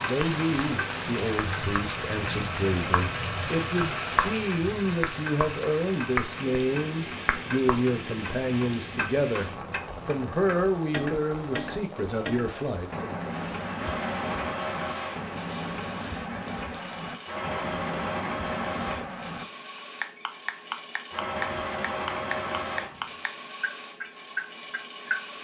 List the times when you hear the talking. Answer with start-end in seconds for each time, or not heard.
0.0-13.2.